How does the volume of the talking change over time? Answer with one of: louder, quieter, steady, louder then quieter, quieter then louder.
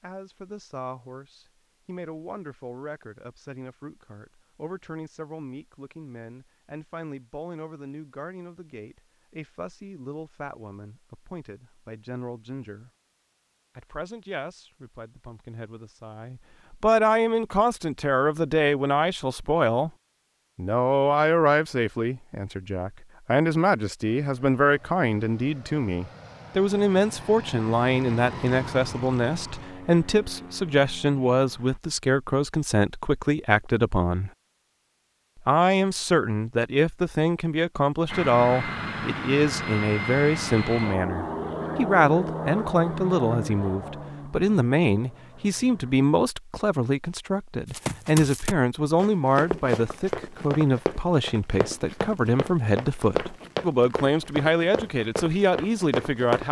louder.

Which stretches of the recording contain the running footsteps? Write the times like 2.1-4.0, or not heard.
47.6-56.4.